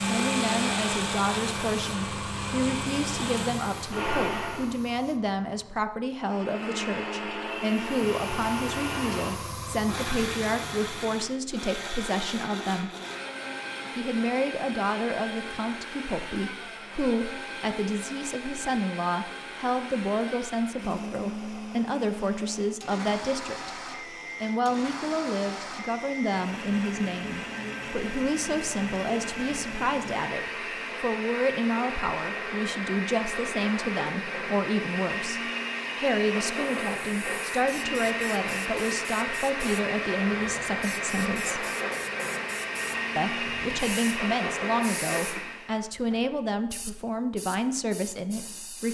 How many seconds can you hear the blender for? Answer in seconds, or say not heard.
44 s.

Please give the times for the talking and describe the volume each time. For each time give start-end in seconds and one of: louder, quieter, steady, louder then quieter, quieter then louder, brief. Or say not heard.
0.0-12.9 steady
13.9-23.8 steady
24.4-41.6 steady
43.1-48.8 steady.